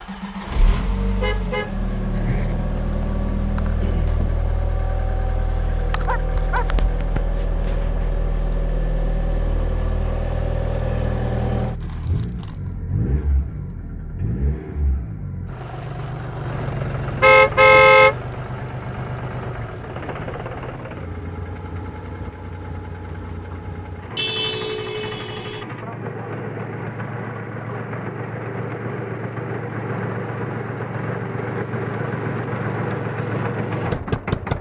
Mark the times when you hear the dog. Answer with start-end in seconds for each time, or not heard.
6.0-6.7.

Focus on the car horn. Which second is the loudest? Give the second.
18 s.